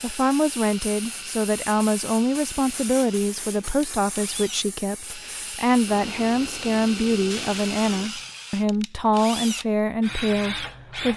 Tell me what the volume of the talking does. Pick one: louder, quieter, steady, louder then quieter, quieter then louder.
steady.